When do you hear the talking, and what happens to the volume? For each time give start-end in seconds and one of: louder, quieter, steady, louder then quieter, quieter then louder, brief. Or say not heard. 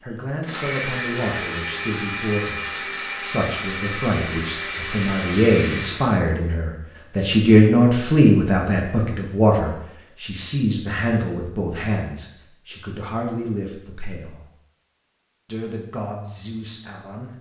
0.0-14.4 louder then quieter
15.4-17.3 brief.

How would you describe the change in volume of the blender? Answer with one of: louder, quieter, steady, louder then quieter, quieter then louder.
steady.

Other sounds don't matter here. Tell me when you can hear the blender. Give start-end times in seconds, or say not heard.
0.0-6.2.